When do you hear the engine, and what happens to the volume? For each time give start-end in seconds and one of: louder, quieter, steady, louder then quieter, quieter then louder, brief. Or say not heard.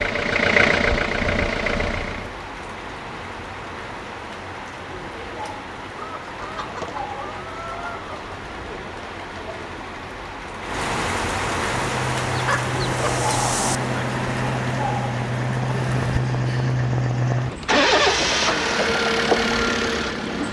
0.0-2.3 brief
11.7-20.4 louder.